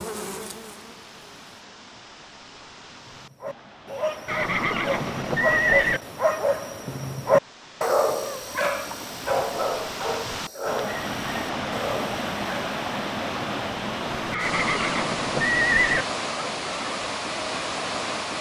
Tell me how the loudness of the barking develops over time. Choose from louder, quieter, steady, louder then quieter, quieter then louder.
louder then quieter.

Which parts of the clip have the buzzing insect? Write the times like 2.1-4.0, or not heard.
0.0-1.6.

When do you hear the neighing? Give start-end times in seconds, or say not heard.
4.2-6.0, 14.3-16.1.